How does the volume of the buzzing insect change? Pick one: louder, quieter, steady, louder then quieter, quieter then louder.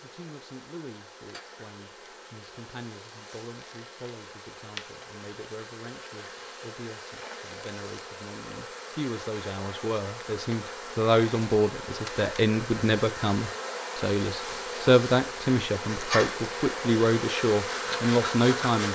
louder.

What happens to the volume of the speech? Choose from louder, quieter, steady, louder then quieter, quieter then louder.
louder.